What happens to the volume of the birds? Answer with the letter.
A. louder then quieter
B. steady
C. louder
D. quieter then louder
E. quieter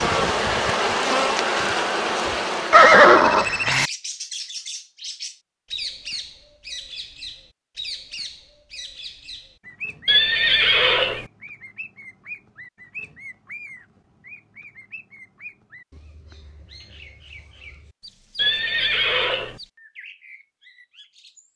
E.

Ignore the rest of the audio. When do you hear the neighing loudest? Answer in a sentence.
The loudest moment of the neighing is at 3 seconds.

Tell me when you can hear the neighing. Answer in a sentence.
The neighing can be heard from 2.7 to 3.9 s, from 10.1 to 11.2 s and from 18.4 to 19.6 s.